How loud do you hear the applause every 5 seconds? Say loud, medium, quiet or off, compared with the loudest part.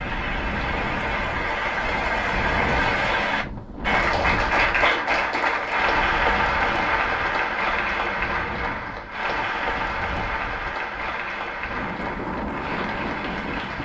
loud, loud, medium.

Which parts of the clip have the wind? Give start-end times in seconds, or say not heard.
0.0-13.7.